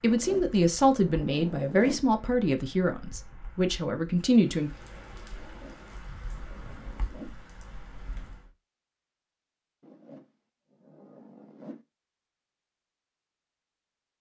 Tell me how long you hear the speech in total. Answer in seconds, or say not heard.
5 s.